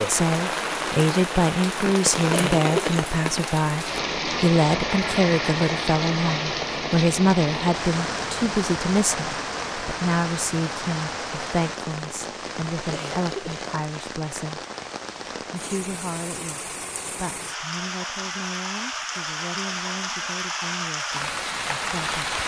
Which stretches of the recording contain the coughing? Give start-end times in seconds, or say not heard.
2.3-3.0, 12.9-13.7.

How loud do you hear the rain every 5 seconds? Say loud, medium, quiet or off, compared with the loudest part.
loud, loud, medium, medium, loud.